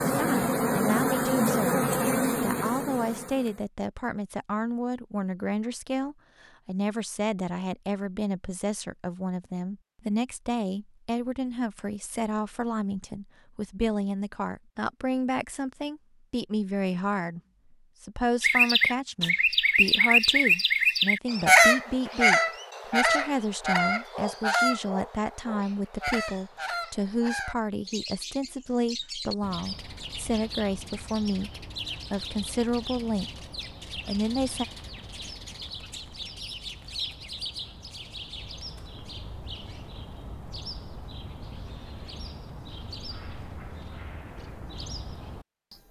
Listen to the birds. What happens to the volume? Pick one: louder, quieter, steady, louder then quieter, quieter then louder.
quieter.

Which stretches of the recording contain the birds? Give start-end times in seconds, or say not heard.
18.4-45.8.